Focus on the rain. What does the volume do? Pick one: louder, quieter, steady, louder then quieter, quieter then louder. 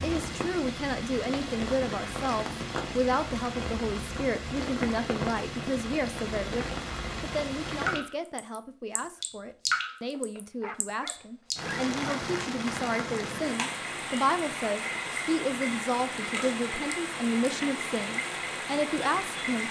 steady.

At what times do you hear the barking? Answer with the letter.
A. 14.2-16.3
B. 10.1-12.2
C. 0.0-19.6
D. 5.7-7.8
B.